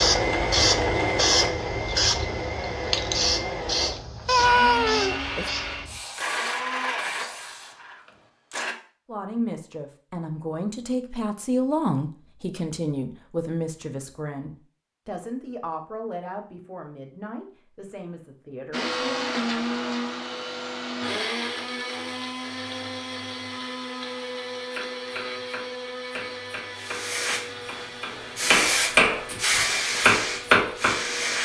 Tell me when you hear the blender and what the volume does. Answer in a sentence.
You can hear the blender from 0.0 to 8.8 s, getting quieter; and from 18.7 to 31.3 s, getting quieter.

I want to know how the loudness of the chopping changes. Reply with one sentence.
The volume of the chopping goes up.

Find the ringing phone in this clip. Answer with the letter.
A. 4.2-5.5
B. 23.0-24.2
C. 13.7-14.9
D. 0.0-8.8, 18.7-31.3
A.